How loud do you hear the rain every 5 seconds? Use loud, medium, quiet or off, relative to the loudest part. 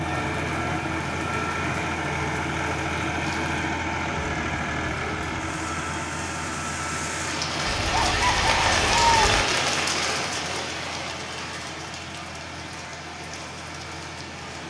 quiet, loud, medium.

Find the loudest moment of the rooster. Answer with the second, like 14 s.
9 s.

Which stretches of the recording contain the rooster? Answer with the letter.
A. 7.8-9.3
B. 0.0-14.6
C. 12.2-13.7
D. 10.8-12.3
A.